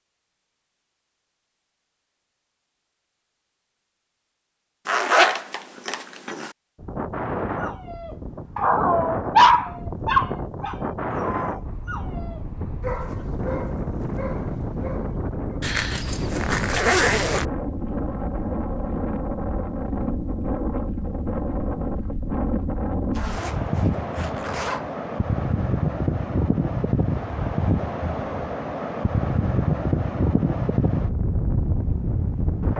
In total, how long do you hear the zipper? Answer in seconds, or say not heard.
5 s.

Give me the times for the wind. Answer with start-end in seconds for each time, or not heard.
6.8-32.7.